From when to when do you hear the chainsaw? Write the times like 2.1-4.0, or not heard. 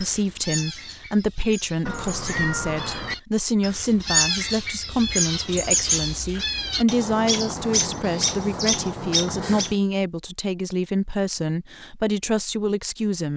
not heard.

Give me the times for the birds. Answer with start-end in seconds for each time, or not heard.
0.0-9.8.